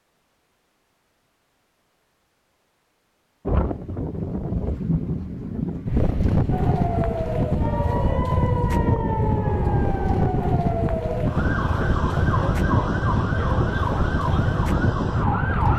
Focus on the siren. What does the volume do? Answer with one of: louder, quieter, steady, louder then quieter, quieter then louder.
steady.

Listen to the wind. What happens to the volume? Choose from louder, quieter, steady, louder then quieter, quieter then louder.
steady.